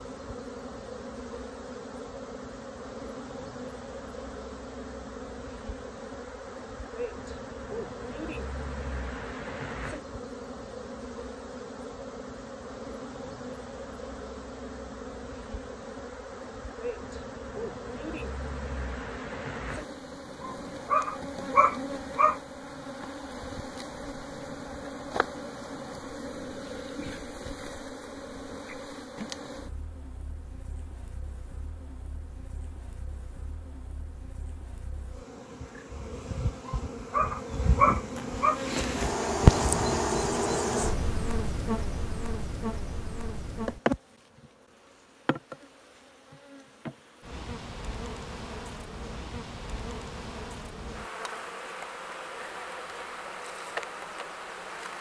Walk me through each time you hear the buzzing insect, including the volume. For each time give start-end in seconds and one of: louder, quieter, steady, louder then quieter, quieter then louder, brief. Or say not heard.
0.0-54.9 louder then quieter.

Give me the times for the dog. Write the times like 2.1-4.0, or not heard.
20.4-22.4, 36.6-38.6.